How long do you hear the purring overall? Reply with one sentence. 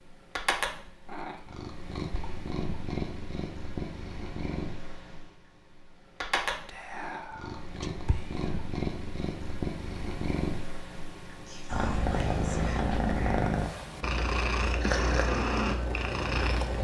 You can hear the purring for 17 seconds altogether.